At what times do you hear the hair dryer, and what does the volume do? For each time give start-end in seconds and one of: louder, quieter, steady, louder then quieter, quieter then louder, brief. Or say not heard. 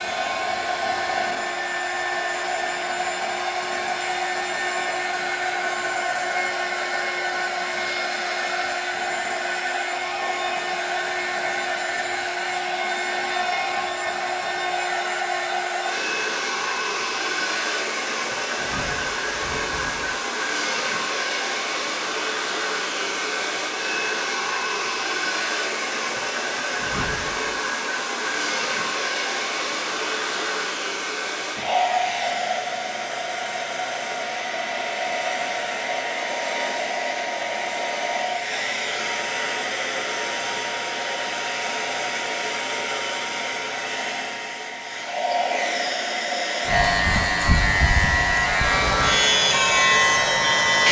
0.0-50.8 steady.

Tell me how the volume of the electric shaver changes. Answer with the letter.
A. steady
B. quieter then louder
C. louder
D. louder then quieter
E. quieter
A.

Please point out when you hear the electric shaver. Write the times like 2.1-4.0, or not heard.
46.6-50.8.